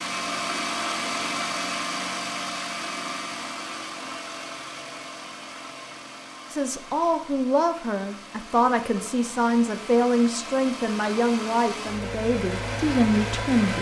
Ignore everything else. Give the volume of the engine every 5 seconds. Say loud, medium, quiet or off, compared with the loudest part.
loud, medium, loud.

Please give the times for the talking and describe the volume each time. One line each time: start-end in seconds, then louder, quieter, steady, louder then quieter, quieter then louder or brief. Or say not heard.
6.5-13.7 steady.